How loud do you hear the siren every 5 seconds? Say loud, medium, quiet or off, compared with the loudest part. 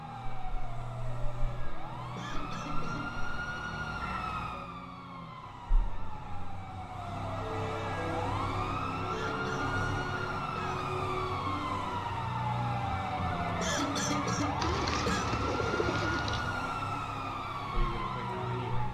medium, loud, loud, loud.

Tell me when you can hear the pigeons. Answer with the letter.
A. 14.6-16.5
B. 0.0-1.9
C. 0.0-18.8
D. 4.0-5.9
A.